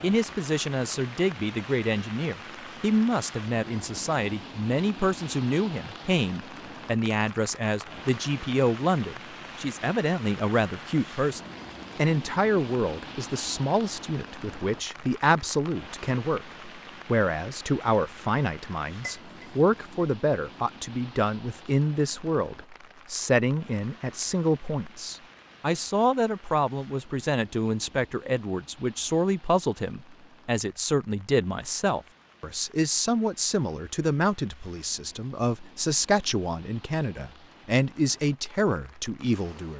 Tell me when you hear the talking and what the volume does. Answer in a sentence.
The talking can be heard from 0.0 to 39.7 s, at a steady volume.